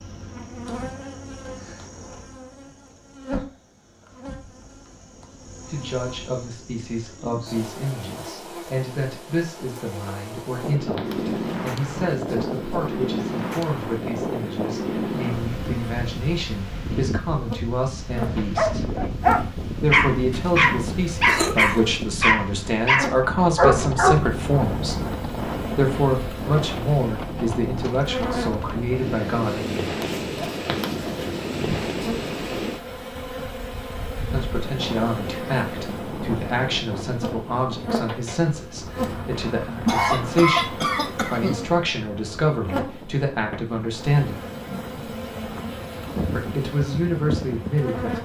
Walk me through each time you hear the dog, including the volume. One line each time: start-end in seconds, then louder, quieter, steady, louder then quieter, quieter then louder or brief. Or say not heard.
18.6-25.1 steady.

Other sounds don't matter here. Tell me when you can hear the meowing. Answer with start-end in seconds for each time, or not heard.
not heard.